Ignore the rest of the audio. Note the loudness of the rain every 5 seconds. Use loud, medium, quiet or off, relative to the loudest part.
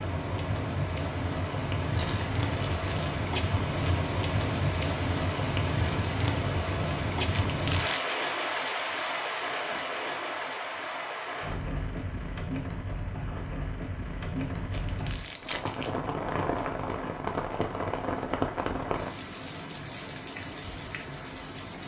loud, loud, medium, loud, medium.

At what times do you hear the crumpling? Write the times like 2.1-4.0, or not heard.
1.9-3.1, 7.3-8.2, 14.7-15.9.